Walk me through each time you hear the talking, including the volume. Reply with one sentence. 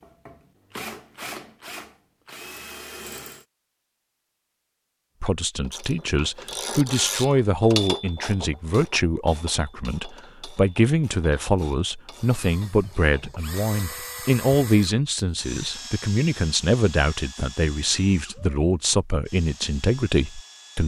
You can hear the talking from 5.2 to 20.8 s, at a steady volume.